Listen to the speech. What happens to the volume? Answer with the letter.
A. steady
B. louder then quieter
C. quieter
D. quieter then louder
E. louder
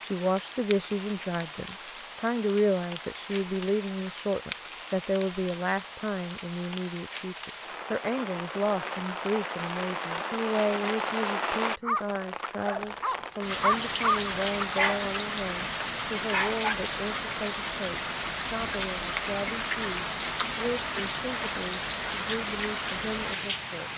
C.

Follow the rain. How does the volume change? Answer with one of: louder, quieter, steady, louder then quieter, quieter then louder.
louder.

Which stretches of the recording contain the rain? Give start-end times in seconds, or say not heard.
0.0-23.9.